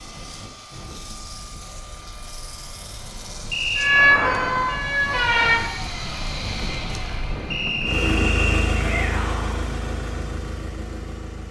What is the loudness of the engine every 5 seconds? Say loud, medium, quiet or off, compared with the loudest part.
medium, loud, medium.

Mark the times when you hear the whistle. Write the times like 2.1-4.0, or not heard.
3.5-4.2, 7.5-8.8.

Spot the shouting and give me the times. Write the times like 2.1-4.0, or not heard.
8.7-9.6.